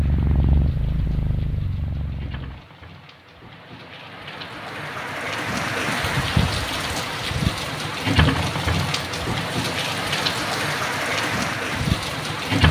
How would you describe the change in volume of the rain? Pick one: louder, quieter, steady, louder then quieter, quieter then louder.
louder.